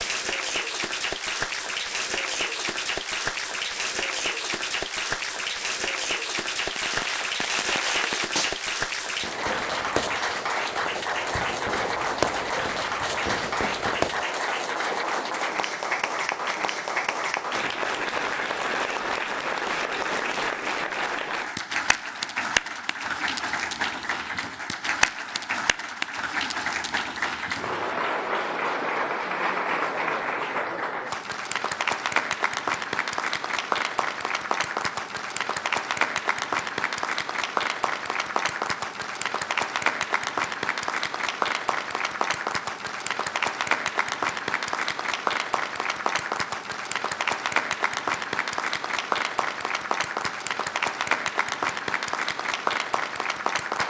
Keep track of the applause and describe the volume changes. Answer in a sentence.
The loudness of the applause stays about the same.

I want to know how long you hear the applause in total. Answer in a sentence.
The applause can be heard for 54 seconds in total.